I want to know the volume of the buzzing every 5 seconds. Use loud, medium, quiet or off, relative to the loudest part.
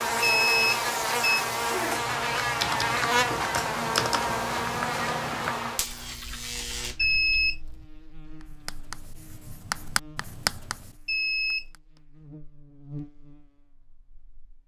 loud, medium, quiet.